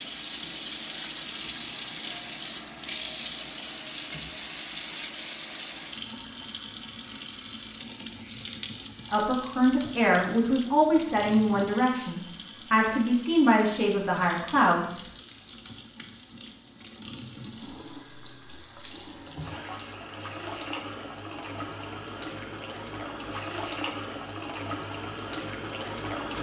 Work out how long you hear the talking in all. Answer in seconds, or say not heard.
6 s.